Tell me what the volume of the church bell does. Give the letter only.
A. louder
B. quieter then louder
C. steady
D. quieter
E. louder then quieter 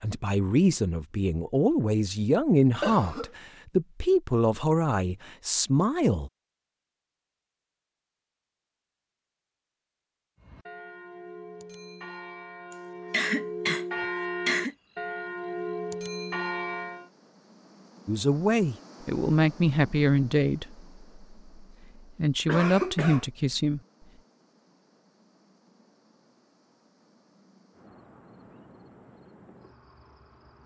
A.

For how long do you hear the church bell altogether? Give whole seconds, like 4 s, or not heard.
7 s.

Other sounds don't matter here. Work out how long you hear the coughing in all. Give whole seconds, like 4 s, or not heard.
3 s.